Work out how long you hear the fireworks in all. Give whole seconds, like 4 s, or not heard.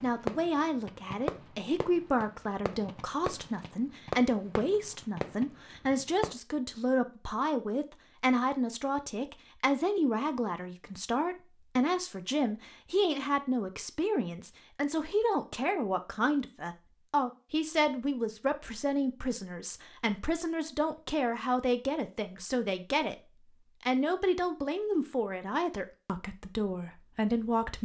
6 s.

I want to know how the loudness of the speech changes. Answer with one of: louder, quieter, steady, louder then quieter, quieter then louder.
steady.